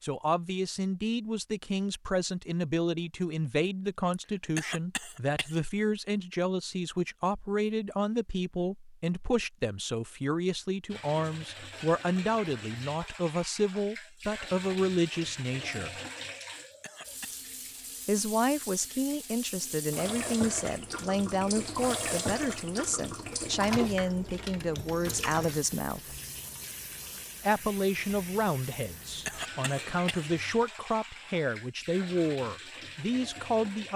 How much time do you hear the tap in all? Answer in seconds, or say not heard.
23 s.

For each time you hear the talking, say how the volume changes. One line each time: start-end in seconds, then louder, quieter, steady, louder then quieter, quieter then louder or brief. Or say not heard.
0.0-15.9 steady
18.1-26.1 steady
27.4-33.9 steady.